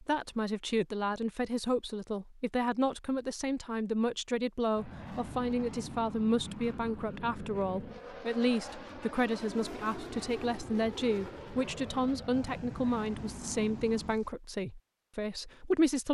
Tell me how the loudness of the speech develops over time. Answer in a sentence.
The loudness of the speech stays about the same.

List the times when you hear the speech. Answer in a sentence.
The speech can be heard from 0.0 to 16.0 s.